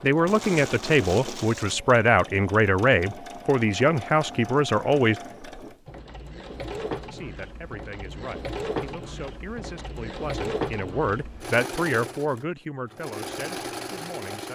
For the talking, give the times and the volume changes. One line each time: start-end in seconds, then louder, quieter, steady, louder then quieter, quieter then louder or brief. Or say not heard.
0.0-5.2 steady
7.1-14.5 louder then quieter.